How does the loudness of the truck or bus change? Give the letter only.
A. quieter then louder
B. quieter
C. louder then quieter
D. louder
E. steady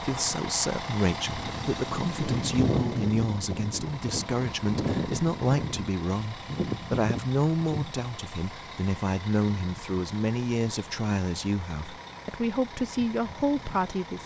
B.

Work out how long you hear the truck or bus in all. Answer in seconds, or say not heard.
14 s.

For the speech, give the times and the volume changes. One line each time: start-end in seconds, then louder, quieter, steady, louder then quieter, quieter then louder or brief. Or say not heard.
0.0-14.2 steady.